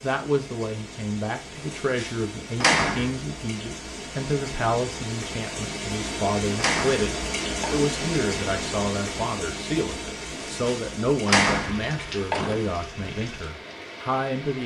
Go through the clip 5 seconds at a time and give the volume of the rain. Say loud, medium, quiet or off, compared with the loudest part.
medium, loud, medium.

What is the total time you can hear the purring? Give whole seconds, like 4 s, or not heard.
not heard.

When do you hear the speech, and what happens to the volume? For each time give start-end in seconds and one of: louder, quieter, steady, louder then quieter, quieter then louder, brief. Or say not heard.
0.0-14.6 steady.